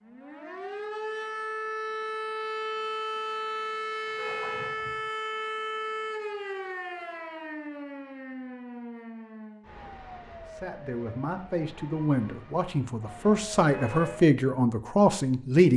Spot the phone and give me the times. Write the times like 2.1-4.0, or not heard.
not heard.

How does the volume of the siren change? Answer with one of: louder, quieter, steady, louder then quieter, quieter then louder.
quieter.